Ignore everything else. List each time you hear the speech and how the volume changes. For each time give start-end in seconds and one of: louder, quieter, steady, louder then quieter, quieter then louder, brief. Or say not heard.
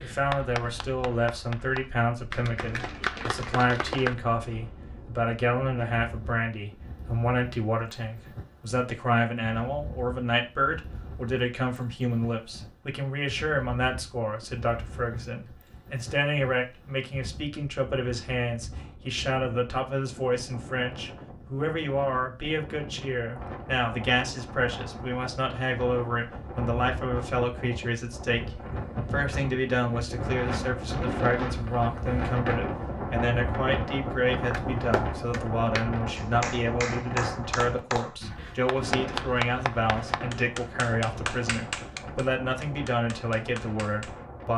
0.0-44.5 steady.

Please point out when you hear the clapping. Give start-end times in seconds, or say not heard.
0.0-4.2, 34.3-44.2.